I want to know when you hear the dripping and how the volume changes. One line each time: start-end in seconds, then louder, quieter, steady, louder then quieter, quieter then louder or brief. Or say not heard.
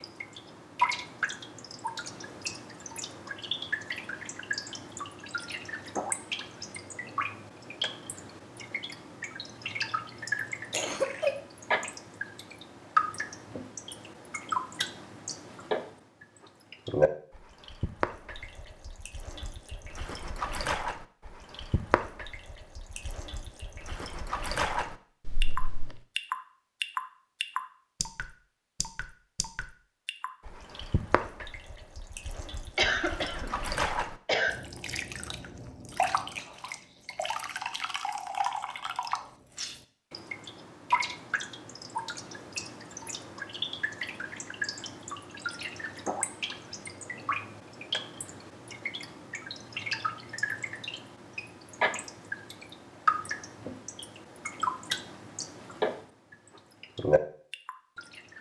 0.0-58.3 steady.